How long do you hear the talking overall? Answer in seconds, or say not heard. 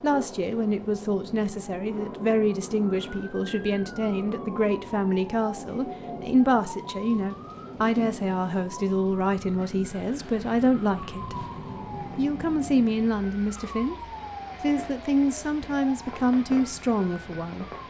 16 s.